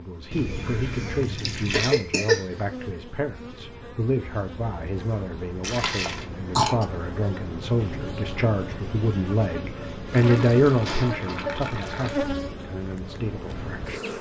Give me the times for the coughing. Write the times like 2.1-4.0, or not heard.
1.7-2.5, 5.8-6.8, 10.8-11.7.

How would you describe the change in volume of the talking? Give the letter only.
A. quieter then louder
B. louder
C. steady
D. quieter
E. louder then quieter
E.